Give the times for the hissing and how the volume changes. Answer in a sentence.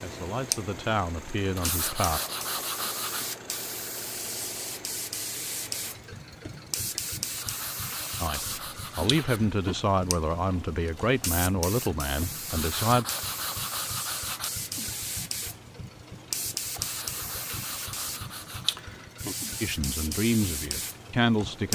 You can hear the hissing from 0.0 to 21.7 s, at a steady volume.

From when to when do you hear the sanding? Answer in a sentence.
The sanding can be heard from 1.6 to 3.4 s, from 7.3 to 9.4 s, from 12.5 to 14.5 s and from 16.7 to 18.8 s.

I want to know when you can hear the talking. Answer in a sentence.
You can hear the talking from 0.0 to 2.2 s, from 8.2 to 13.1 s and from 19.6 to 21.7 s.